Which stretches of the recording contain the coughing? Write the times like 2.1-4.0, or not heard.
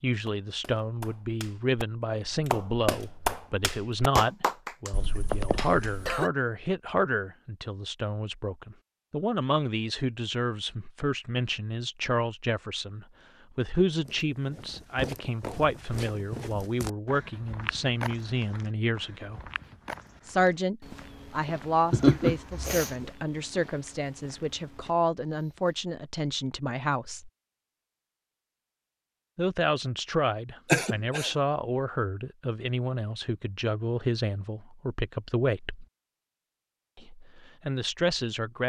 4.9-6.3, 21.9-23.1, 30.6-31.4.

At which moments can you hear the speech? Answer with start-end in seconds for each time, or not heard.
0.0-19.4, 20.2-27.3, 29.4-35.9, 37.0-38.6.